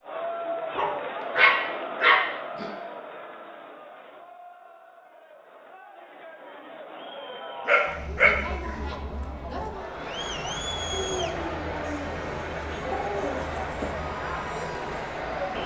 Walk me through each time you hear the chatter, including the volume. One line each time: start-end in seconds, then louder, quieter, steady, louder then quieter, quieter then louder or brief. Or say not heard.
0.0-15.6 quieter then louder.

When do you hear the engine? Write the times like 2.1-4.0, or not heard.
9.9-15.6.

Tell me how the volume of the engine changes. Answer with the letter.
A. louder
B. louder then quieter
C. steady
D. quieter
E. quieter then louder
C.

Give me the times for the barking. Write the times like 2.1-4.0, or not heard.
0.8-2.7, 7.7-8.8, 10.9-13.4.